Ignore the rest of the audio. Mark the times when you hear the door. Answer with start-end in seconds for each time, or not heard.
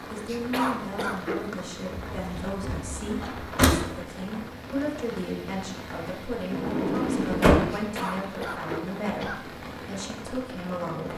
2.1-3.8, 6.5-7.7.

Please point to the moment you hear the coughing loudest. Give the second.
1 s.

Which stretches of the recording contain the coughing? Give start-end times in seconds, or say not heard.
0.2-1.4, 7.7-9.5.